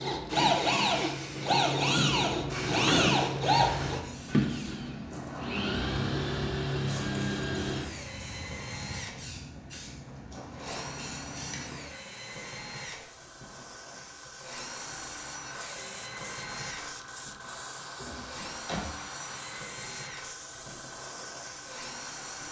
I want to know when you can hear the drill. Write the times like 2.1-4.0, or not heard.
0.0-22.4.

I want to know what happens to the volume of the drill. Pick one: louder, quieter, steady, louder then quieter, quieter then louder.
quieter.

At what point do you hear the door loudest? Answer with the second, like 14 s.
3 s.